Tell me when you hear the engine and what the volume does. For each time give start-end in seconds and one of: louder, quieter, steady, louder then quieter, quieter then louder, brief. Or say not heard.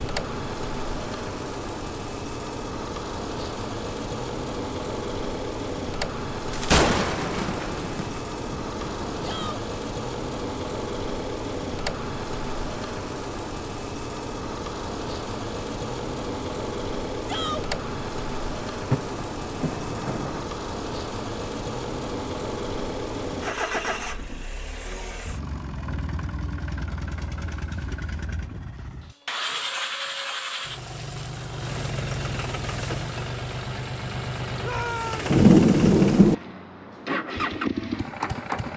0.0-38.7 steady.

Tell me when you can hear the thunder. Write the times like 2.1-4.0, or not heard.
6.5-9.6, 18.9-20.4, 35.3-36.4.